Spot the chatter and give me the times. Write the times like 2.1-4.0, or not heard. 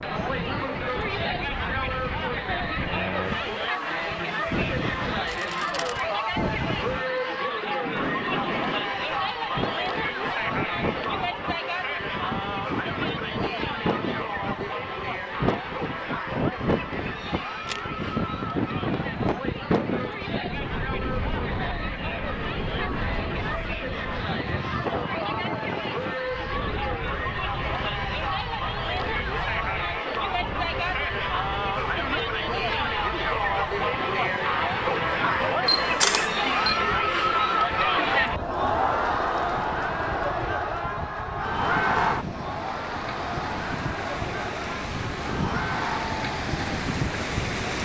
0.0-47.7.